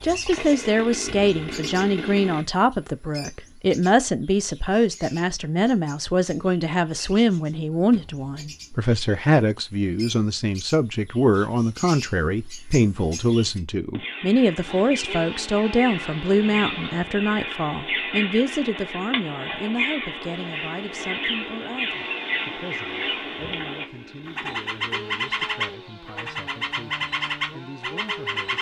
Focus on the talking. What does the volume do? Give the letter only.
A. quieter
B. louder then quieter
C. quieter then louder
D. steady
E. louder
A.